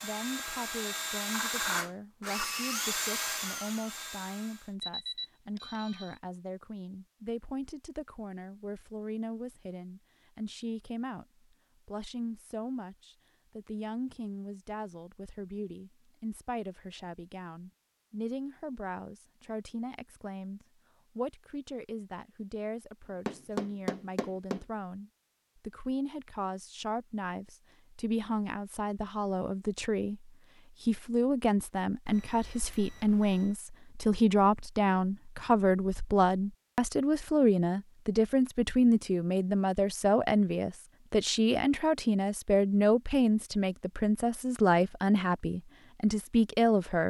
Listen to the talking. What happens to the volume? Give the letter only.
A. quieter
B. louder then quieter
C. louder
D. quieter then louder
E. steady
C.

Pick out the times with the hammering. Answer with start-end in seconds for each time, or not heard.
23.2-24.6.